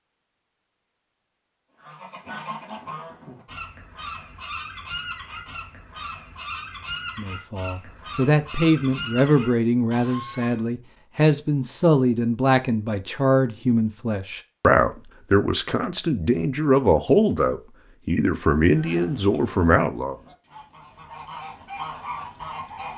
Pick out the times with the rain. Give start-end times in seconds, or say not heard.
not heard.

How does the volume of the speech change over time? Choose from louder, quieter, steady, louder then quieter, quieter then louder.
steady.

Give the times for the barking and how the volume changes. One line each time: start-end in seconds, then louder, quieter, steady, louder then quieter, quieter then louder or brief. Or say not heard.
not heard.